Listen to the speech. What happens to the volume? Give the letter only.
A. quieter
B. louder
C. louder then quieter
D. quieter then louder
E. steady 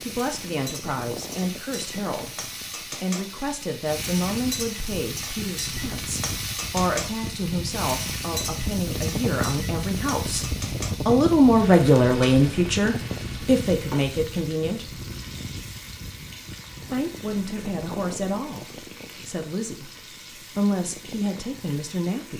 C.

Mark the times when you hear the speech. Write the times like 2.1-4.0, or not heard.
0.0-15.0, 16.9-22.3.